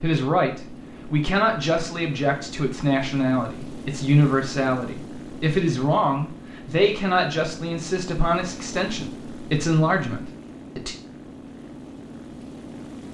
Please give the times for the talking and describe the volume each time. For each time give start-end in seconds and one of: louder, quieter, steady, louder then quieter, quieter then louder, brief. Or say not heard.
0.0-10.9 steady.